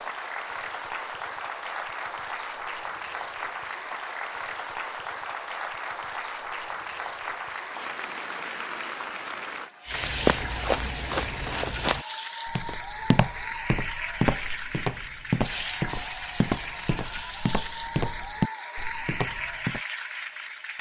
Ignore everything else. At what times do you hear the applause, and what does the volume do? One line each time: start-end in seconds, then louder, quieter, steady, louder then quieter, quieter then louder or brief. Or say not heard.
0.0-20.7 steady.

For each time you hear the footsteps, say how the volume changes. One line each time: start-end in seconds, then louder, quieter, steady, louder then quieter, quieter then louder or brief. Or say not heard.
9.9-19.8 steady.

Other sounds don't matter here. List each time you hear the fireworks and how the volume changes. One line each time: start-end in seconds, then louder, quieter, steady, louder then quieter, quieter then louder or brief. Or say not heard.
not heard.